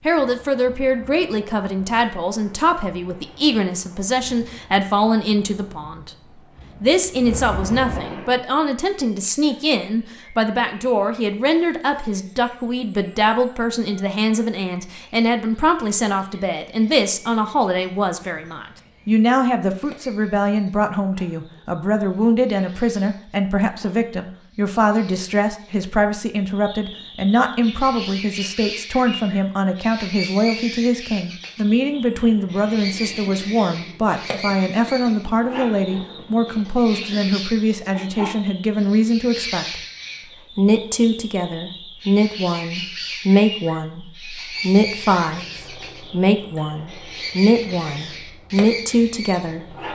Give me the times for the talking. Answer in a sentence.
You can hear the talking from 0.1 to 6.1 s, from 6.8 to 39.8 s and from 40.5 to 49.6 s.